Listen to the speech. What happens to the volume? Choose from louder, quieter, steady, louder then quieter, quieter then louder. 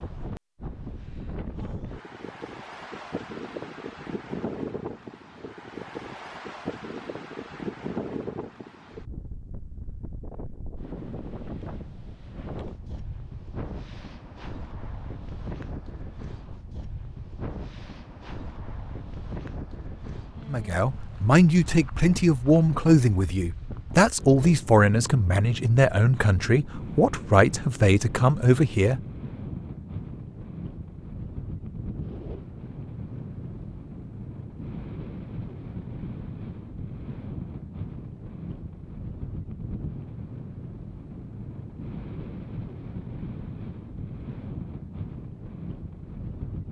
steady.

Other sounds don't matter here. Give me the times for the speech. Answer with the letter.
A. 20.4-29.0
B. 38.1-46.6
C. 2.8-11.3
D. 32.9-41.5
A.